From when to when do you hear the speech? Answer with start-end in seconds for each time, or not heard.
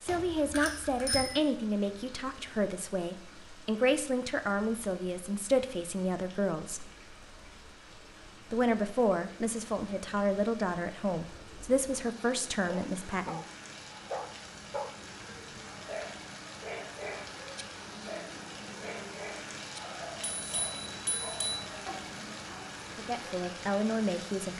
0.0-6.8, 8.5-13.4, 22.9-24.5.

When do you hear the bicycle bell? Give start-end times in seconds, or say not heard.
0.1-1.4, 20.2-21.6.